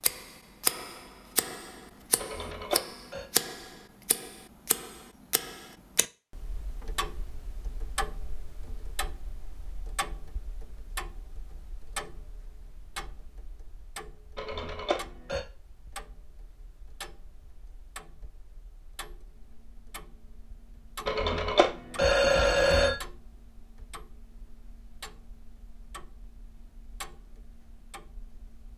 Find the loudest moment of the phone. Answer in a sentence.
The volume of the phone peaks at 22 seconds.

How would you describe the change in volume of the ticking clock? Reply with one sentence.
The loudness of the ticking clock goes down.